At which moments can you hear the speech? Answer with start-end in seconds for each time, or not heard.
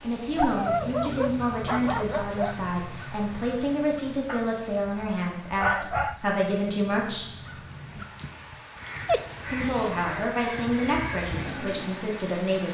0.0-7.2, 9.4-12.6.